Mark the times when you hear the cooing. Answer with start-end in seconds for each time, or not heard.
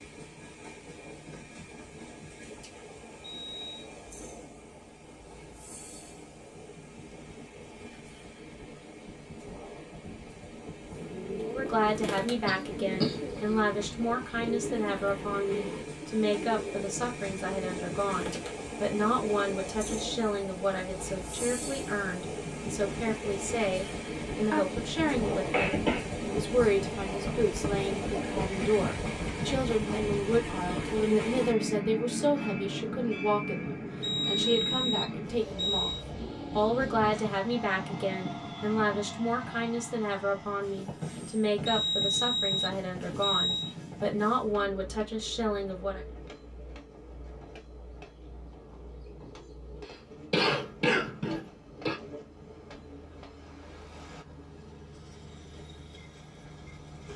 10.9-19.4.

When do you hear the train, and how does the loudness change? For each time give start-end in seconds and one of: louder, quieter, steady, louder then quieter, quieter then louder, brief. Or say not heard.
0.0-57.1 louder then quieter.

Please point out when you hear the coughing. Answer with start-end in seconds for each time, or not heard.
12.4-13.7, 24.5-26.1, 49.9-52.0.